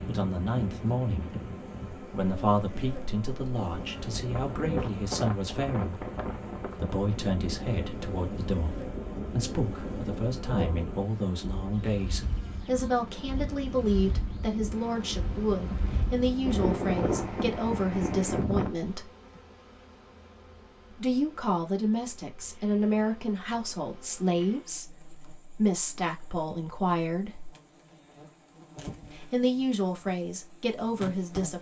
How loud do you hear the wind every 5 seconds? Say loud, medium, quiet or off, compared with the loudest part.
medium, medium, medium, loud, off, off, off.